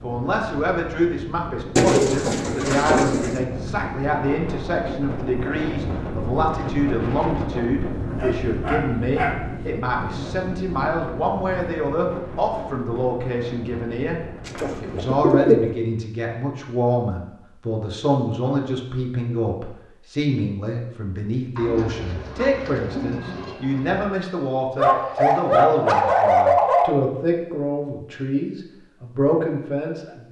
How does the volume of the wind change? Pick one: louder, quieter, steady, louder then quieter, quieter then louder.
louder then quieter.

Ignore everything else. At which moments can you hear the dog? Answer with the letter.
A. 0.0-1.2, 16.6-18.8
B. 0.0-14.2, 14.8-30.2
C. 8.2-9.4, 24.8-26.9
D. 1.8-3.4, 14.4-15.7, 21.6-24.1
C.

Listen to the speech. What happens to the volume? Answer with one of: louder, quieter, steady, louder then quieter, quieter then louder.
steady.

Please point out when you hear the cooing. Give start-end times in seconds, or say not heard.
1.8-3.4, 14.4-15.7, 21.6-24.1.